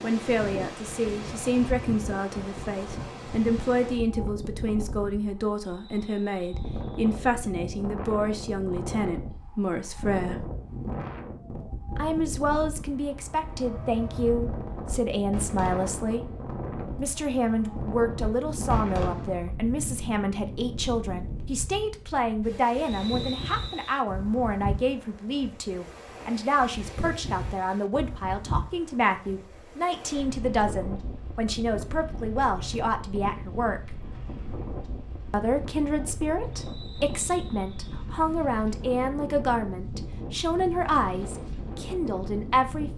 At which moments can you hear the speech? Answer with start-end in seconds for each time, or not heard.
0.0-10.4, 11.9-16.2, 16.9-34.0, 35.3-42.9.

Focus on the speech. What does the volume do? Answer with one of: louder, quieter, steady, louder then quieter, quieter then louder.
steady.